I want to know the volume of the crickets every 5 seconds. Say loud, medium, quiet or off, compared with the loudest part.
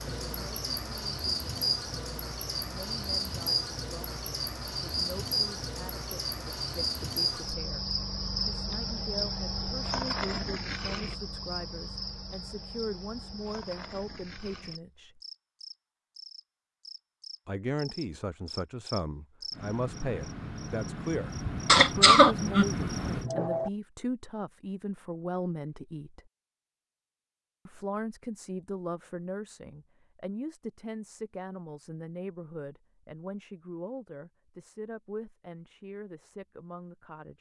loud, loud, medium, medium, loud, off, off, off.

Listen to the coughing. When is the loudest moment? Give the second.
22 s.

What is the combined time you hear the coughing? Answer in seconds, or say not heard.
2 s.